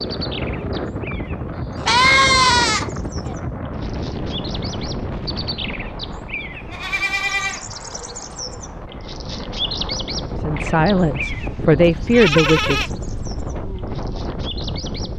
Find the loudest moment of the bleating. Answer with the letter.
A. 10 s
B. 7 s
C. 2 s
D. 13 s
C.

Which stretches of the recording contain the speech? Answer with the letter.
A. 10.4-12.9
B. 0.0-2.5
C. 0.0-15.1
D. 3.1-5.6
A.